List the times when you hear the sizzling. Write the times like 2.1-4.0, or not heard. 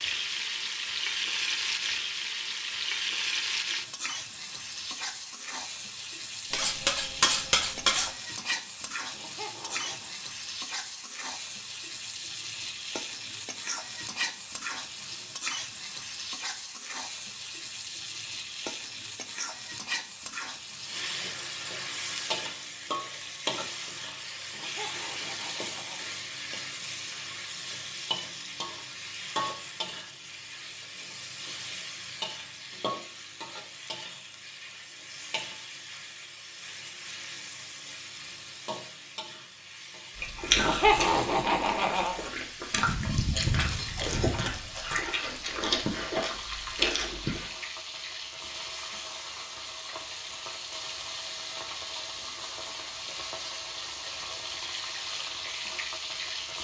0.0-56.5.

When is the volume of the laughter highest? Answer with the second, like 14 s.
41 s.